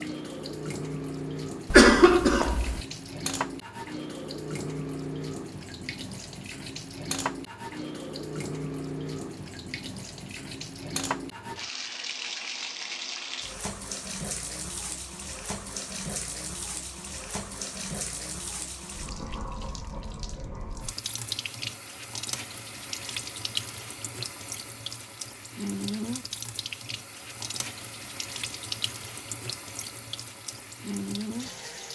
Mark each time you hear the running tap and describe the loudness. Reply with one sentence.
The running tap can be heard from 0.0 to 31.8 s, at a steady volume.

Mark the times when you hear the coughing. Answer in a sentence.
You can hear the coughing from 1.7 to 2.8 s.